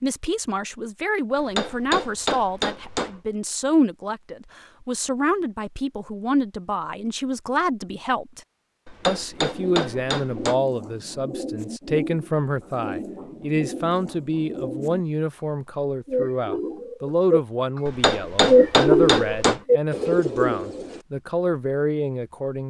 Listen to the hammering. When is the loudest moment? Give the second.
19 s.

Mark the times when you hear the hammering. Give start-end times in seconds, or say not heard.
1.4-3.2, 8.8-10.6, 17.9-19.6.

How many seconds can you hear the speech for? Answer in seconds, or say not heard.
22 s.